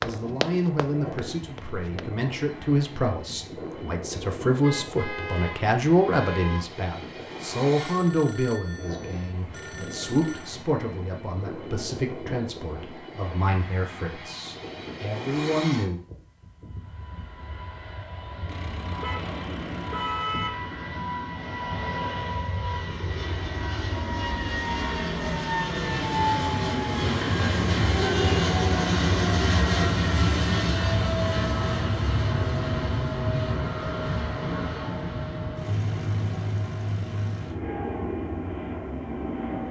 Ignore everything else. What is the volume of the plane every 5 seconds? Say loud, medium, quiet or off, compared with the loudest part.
quiet, quiet, quiet, quiet, medium, loud, loud, medium.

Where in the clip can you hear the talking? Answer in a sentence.
The talking can be heard from 0.0 to 16.0 s.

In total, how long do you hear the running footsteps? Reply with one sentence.
You can hear the running footsteps for 2 seconds altogether.